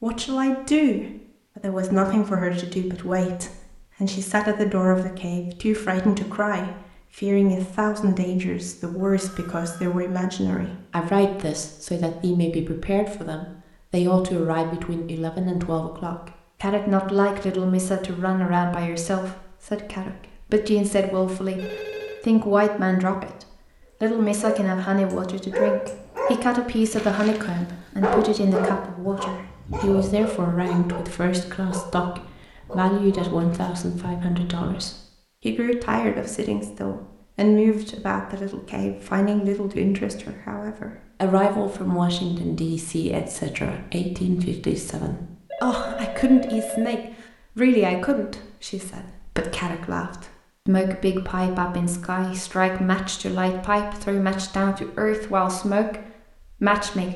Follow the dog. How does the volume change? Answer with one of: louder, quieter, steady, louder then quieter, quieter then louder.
quieter.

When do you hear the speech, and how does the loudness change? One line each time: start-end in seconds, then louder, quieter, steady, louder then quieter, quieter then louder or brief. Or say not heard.
0.0-21.6 steady
22.2-57.1 steady.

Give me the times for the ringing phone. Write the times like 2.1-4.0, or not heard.
8.9-9.9, 21.6-22.2, 45.5-47.0.